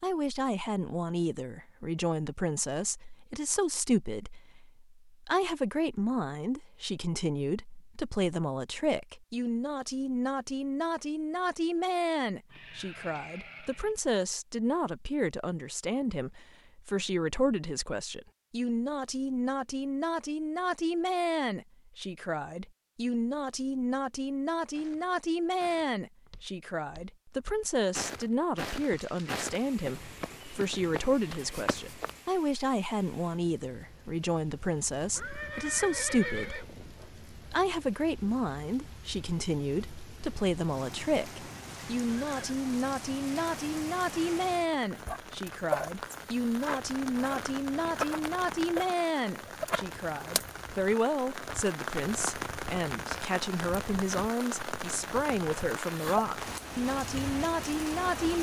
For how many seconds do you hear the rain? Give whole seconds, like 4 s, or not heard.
30 s.